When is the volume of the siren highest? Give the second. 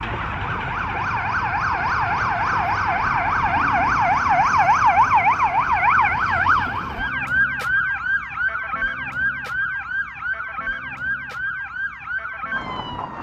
5 s.